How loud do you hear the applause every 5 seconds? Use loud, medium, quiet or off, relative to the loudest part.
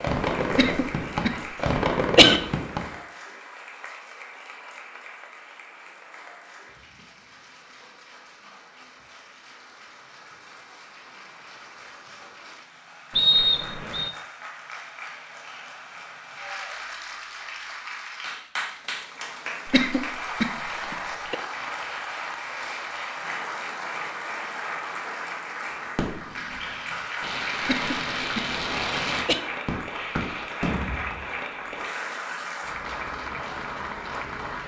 medium, quiet, medium, loud, loud, loud, loud.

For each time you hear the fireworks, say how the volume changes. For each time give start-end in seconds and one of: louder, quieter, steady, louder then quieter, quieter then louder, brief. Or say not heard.
0.0-3.0 brief
25.8-31.3 louder.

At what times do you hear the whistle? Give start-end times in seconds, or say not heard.
13.2-14.1.